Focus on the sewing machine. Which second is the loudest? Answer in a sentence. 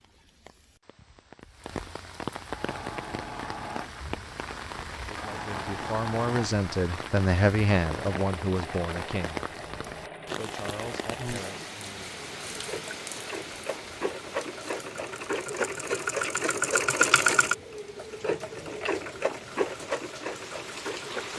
The loudest moment of the sewing machine is at 17 seconds.